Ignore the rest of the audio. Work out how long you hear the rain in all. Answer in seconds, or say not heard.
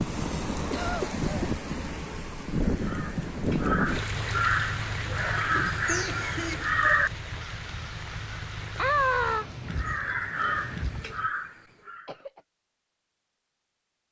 11 s.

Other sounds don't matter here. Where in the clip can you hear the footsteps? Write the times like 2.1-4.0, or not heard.
not heard.